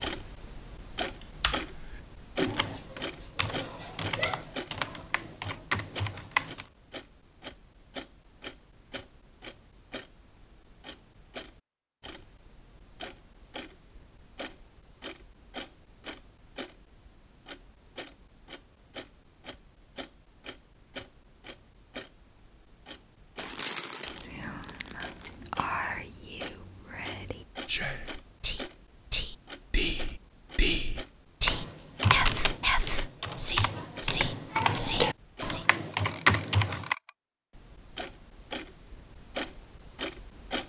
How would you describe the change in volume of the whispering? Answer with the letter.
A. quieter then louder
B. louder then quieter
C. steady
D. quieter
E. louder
E.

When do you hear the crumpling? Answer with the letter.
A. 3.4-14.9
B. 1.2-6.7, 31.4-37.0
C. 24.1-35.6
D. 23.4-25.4
D.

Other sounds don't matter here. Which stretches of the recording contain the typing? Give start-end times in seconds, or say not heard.
1.2-6.7, 31.4-37.0.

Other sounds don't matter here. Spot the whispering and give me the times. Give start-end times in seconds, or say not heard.
24.1-35.6.